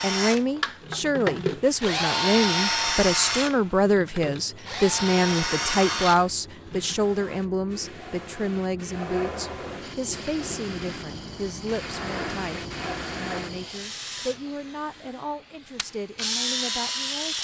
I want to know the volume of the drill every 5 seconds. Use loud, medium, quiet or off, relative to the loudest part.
loud, loud, quiet, loud.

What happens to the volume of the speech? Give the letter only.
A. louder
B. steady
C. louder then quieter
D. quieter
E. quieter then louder
D.